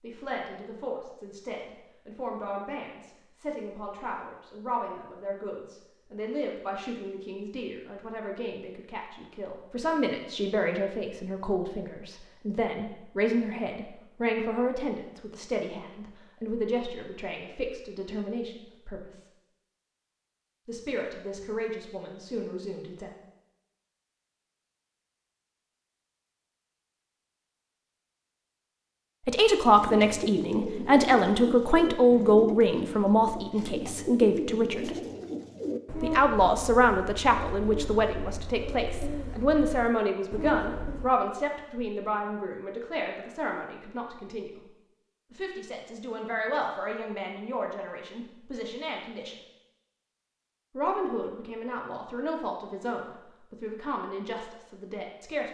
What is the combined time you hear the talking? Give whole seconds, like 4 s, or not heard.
45 s.